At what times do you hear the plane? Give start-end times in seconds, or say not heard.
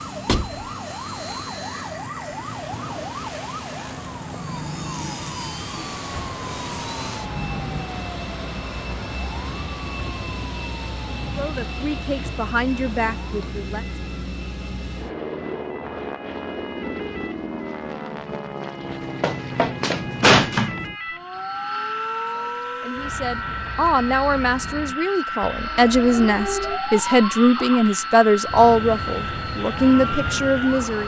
0.0-31.0.